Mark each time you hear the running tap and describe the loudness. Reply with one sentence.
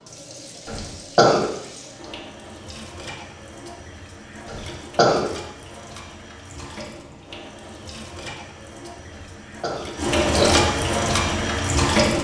You can hear the running tap from 0.0 to 12.1 s, getting louder.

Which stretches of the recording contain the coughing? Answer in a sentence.
You can hear the coughing from 0.7 to 1.5 s, from 4.5 to 5.3 s and from 9.2 to 10.6 s.